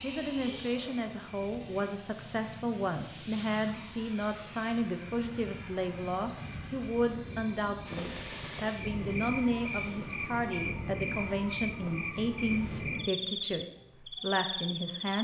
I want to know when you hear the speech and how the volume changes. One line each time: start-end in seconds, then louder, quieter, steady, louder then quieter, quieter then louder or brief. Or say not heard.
0.0-15.1 steady.